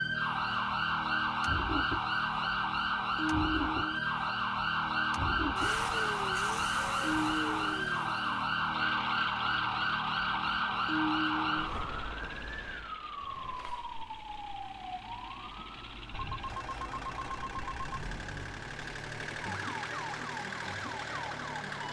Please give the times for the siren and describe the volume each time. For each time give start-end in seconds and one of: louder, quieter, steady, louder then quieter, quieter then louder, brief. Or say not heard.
0.0-21.8 quieter.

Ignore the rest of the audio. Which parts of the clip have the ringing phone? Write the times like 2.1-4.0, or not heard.
16.1-18.0.